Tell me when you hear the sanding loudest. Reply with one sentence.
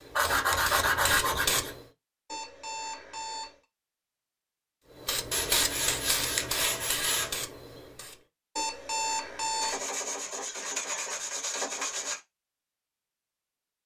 The loudest moment of the sanding is at 1 second.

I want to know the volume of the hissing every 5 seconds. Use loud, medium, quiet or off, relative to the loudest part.
loud, loud, off.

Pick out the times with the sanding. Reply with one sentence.
The sanding can be heard from 0.1 to 1.8 s, from 5.3 to 7.3 s and from 9.6 to 12.2 s.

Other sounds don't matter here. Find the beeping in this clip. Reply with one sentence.
The beeping can be heard from 2.2 to 3.5 s and from 8.6 to 9.8 s.